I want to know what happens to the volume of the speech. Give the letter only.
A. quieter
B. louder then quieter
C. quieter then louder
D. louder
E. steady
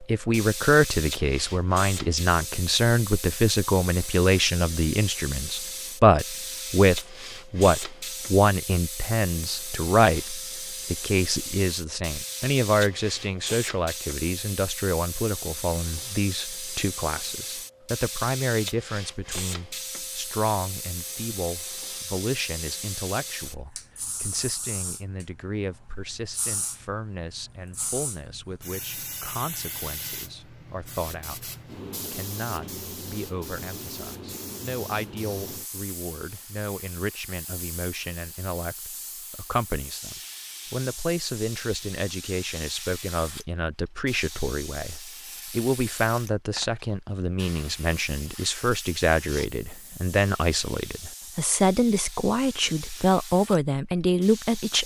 C.